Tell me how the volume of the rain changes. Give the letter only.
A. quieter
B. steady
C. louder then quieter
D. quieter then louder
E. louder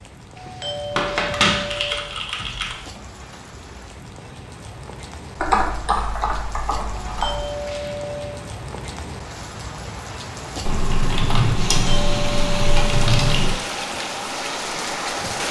E.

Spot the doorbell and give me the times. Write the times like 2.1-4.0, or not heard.
0.3-2.1, 7.0-8.4, 11.8-13.2.